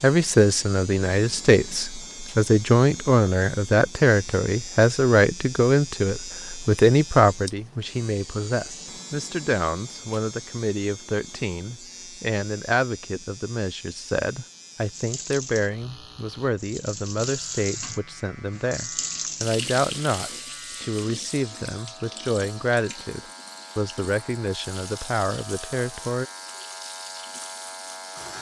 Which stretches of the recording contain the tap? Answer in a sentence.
You can hear the tap from 14.8 to 28.3 s.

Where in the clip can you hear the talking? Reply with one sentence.
The talking can be heard from 0.0 to 26.2 s.